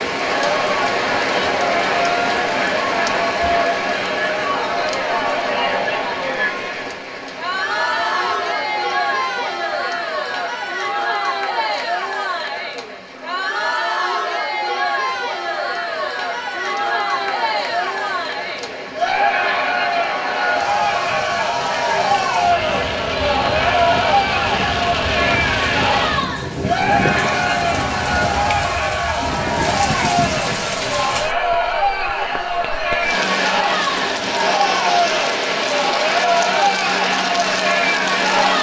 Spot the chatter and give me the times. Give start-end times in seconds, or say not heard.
0.1-38.5.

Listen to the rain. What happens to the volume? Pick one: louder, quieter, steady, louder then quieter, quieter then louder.
quieter then louder.